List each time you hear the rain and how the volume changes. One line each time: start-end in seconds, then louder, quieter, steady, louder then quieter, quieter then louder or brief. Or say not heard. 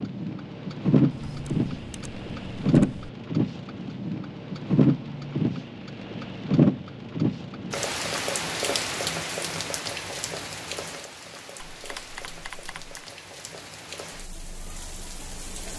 0.0-15.7 quieter.